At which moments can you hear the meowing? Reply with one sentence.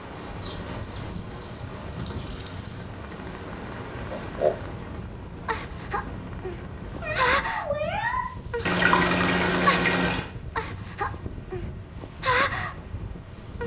The meowing can be heard from 7.0 to 8.3 s.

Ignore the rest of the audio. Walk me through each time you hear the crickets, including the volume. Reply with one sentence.
The crickets can be heard from 0.0 to 13.6 s, at a steady volume.